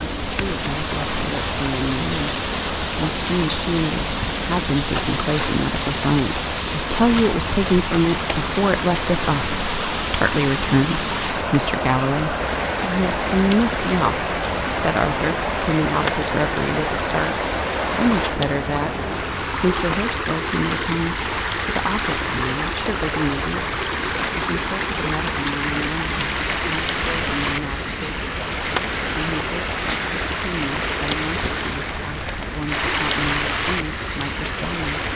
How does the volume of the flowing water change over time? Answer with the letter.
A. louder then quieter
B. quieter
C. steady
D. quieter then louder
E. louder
C.